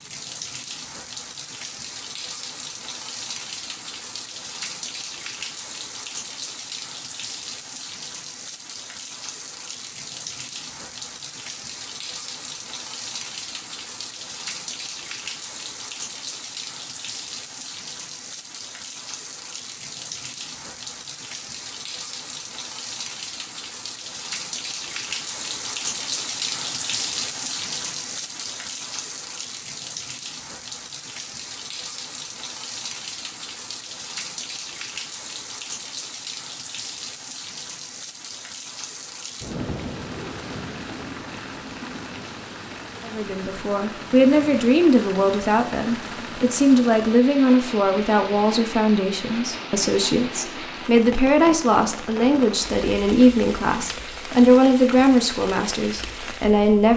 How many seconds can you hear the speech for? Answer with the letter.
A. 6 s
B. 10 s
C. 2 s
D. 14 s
D.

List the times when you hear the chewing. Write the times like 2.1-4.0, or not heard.
not heard.